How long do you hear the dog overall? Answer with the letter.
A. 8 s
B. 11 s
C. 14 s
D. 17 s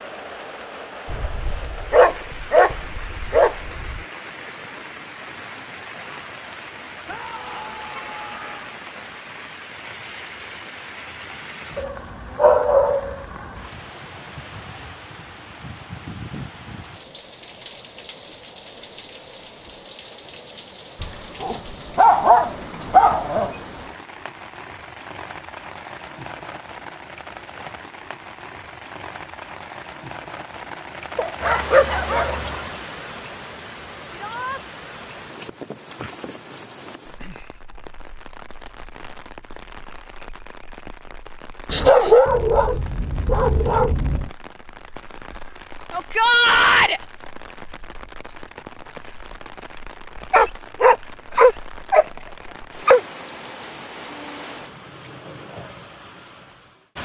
C.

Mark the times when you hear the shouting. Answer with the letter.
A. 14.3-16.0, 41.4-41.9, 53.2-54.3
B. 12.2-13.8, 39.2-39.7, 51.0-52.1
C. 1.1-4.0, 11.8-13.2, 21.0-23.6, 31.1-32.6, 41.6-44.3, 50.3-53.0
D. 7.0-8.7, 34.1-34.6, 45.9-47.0
D.